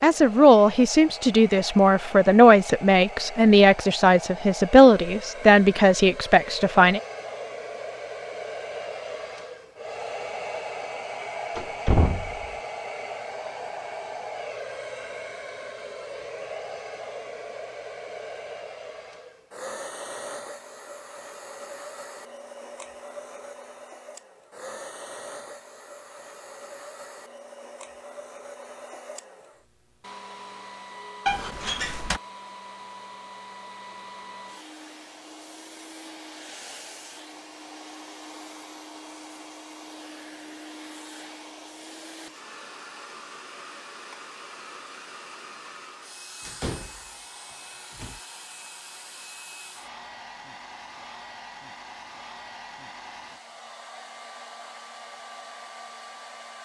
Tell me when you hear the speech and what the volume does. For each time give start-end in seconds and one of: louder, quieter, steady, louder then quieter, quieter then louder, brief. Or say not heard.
0.0-7.0 steady.